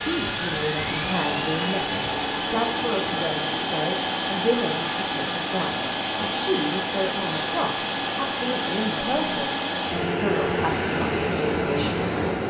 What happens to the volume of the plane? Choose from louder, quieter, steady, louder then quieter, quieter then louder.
steady.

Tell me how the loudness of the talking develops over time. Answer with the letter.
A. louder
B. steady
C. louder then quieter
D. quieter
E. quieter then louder
B.